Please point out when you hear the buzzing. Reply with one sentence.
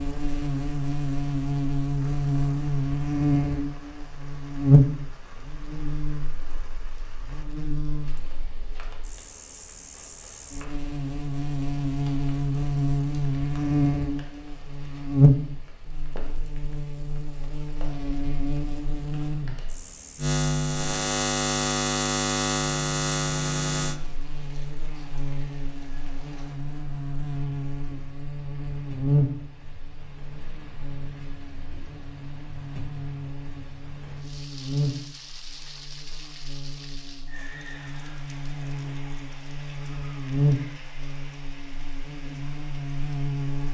The buzzing can be heard from 0.0 to 43.6 s.